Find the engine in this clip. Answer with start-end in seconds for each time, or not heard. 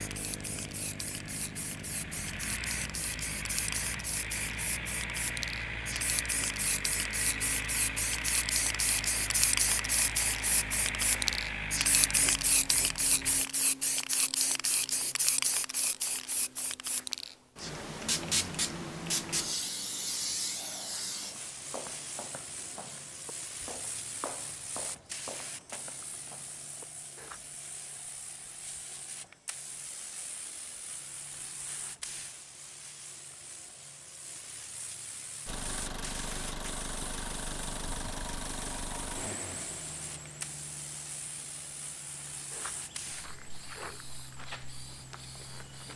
0.0-13.4, 35.5-45.9.